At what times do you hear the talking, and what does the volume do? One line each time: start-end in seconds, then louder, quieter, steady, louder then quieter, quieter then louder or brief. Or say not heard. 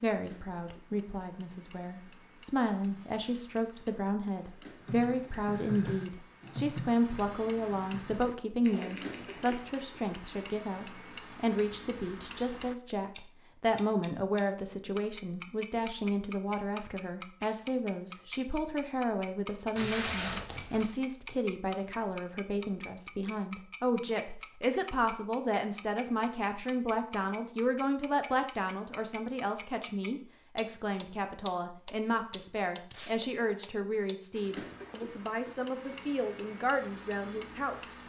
0.0-38.0 steady.